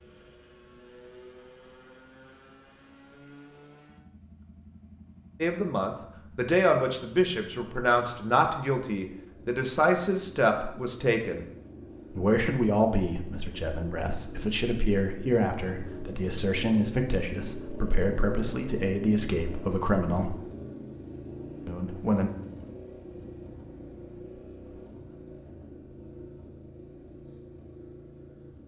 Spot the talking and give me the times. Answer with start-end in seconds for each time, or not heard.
5.4-11.4, 12.1-20.4, 21.6-22.3.